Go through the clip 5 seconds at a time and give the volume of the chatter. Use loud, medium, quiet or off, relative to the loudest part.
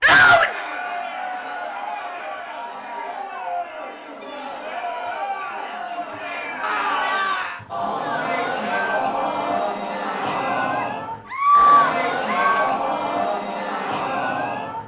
medium, loud, loud.